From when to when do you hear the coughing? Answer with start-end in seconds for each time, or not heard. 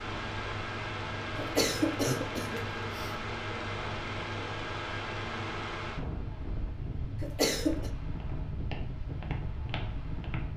1.4-3.1, 7.2-7.9.